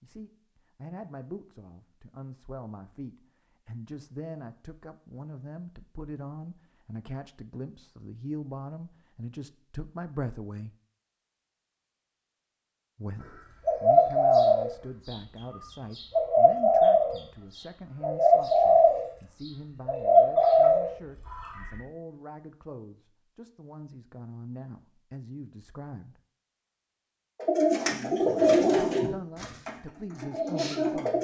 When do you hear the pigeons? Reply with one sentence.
The pigeons can be heard from 13.7 to 15.2 s, from 15.9 to 17.1 s, from 18.0 to 19.1 s, from 19.9 to 21.8 s and from 27.4 to 31.1 s.